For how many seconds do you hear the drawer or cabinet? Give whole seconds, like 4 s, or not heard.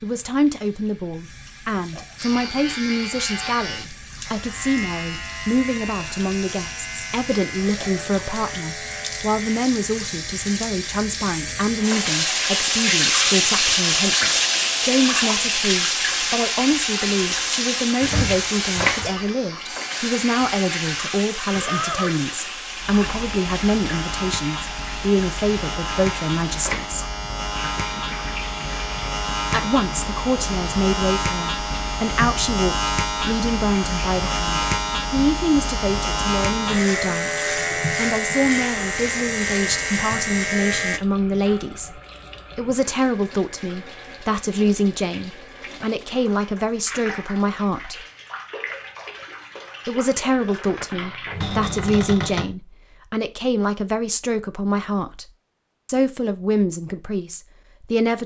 2 s.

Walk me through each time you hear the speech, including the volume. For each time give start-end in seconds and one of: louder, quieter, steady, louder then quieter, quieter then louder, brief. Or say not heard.
0.0-27.1 steady
29.5-48.0 steady
49.9-55.2 steady
55.9-58.2 brief.